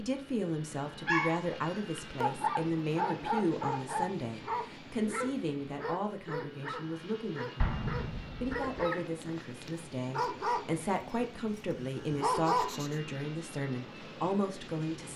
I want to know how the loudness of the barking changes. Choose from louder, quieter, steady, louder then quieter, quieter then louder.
quieter then louder.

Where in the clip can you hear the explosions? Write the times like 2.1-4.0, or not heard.
7.6-8.8.